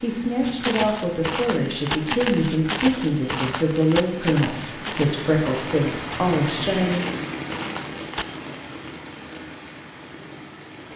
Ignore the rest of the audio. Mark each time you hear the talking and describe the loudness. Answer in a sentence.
The talking can be heard from 0.0 to 7.0 s, at a steady volume.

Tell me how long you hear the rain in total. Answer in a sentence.
The rain can be heard for 11 seconds in total.